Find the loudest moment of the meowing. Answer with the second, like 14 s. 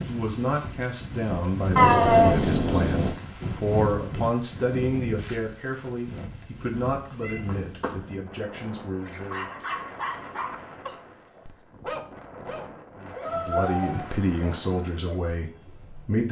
2 s.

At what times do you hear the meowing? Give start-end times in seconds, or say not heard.
1.8-3.1, 6.9-8.1, 13.2-14.4.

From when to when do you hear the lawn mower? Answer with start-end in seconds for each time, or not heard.
not heard.